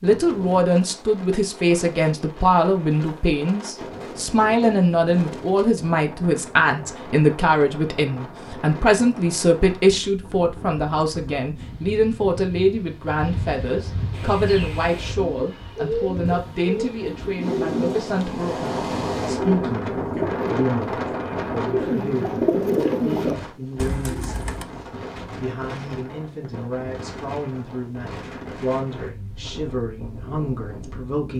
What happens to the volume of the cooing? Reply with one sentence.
The volume of the cooing goes up.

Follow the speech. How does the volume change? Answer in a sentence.
The loudness of the speech goes down.